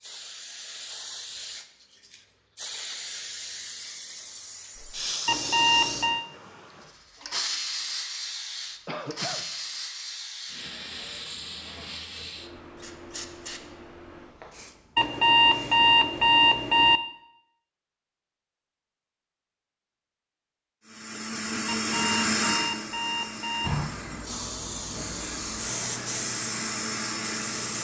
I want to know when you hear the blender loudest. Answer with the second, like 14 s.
22 s.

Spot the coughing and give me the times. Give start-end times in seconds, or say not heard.
8.8-9.4.